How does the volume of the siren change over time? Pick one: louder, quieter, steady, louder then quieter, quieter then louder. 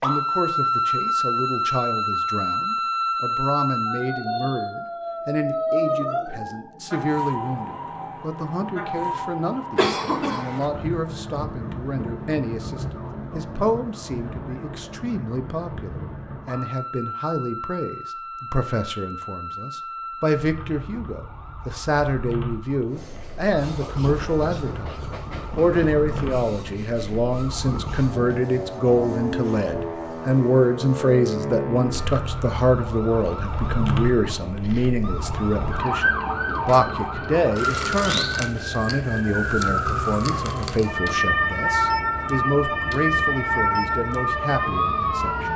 quieter then louder.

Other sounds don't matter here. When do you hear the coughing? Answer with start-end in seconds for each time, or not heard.
9.8-10.7.